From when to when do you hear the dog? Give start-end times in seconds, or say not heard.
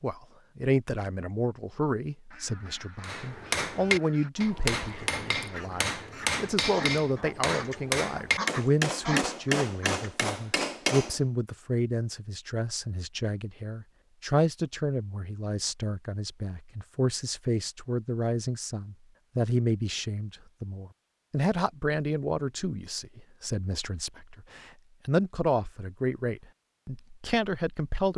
not heard.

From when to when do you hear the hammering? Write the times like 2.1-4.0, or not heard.
3.0-11.2.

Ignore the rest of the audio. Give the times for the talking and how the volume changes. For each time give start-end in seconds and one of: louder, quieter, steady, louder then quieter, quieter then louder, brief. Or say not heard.
0.0-28.1 steady.